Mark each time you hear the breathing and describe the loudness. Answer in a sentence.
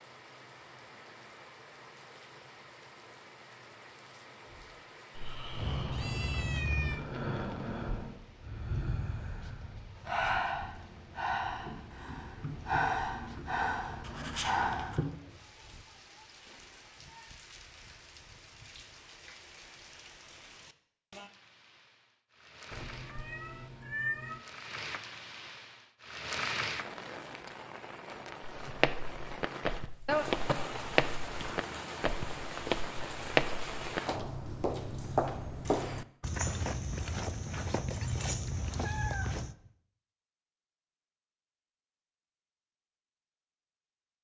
The breathing can be heard from 4.5 to 15.1 s, getting louder.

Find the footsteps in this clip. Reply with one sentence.
The footsteps can be heard from 28.6 to 39.5 s.